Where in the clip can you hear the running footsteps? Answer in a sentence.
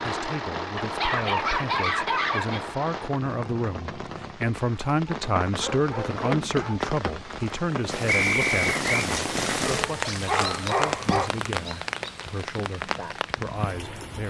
You can't hear the running footsteps here.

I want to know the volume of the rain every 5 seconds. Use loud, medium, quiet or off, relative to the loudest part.
medium, loud, loud.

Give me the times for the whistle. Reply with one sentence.
The whistle can be heard from 8.1 to 9.1 s.